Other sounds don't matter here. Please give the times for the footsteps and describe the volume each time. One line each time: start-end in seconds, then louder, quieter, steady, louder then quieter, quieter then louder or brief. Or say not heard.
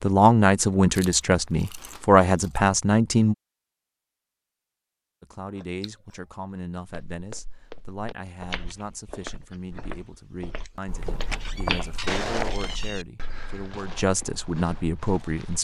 7.1-15.6 louder then quieter.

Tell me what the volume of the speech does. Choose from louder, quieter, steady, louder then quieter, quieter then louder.
quieter then louder.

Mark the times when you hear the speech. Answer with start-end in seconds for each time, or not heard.
0.0-3.4, 5.2-15.6.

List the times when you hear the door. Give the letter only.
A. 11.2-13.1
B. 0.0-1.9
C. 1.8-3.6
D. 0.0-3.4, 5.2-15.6
A.